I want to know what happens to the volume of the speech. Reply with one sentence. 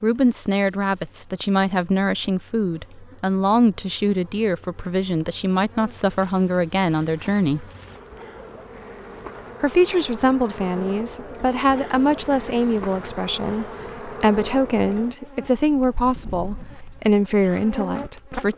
The volume of the speech stays about the same.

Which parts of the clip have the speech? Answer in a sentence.
The speech can be heard from 0.0 to 7.7 s and from 9.6 to 18.5 s.